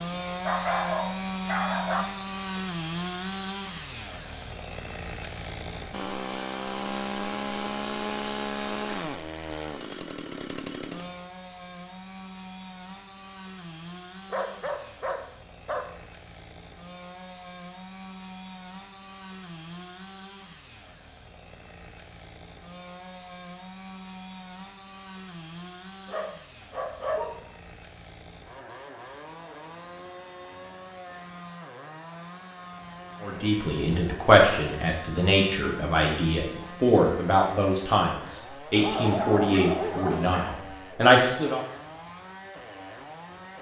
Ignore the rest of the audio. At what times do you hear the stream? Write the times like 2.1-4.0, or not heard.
not heard.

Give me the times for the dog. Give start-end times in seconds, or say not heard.
0.4-2.0, 14.3-15.9, 26.1-27.4, 38.8-40.6.